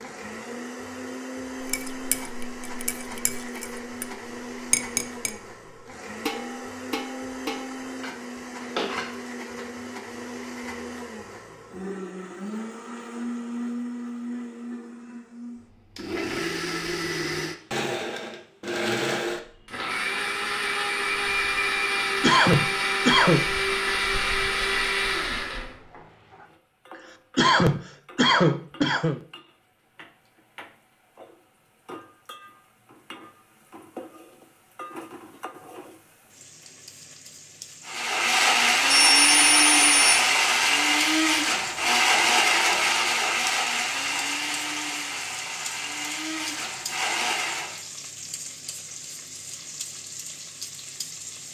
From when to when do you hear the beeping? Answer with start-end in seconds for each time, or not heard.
38.9-40.2.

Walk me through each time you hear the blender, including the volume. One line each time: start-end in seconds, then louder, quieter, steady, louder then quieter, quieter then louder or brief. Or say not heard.
0.0-25.9 louder
37.9-47.8 quieter.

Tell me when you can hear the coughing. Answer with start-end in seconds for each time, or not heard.
22.2-23.5, 27.4-29.2.